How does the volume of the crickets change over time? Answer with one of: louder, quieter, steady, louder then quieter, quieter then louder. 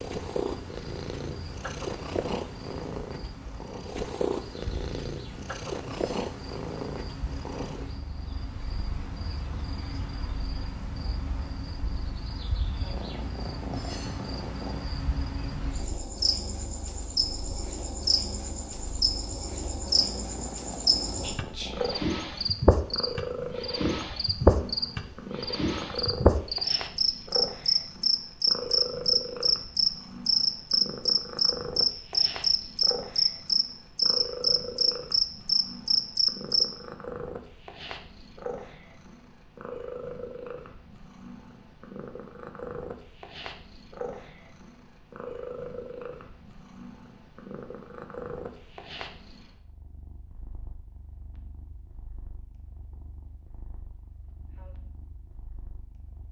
louder.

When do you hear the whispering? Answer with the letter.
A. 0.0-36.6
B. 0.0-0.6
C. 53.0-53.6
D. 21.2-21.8
D.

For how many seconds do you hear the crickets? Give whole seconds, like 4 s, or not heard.
37 s.